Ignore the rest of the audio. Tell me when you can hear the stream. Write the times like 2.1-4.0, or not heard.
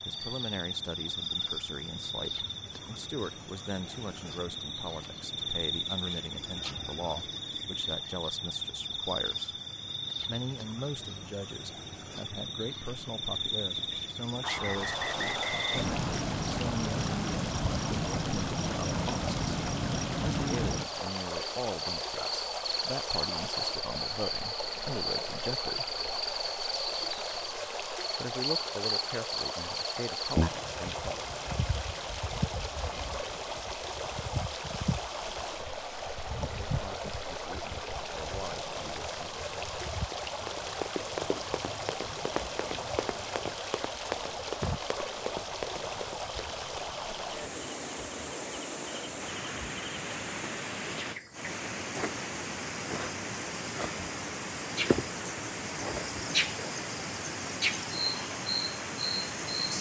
14.6-59.7.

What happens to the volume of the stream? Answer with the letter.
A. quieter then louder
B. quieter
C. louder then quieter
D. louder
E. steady
E.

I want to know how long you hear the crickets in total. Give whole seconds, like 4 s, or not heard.
60 s.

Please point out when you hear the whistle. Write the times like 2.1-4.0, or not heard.
14.4-15.9.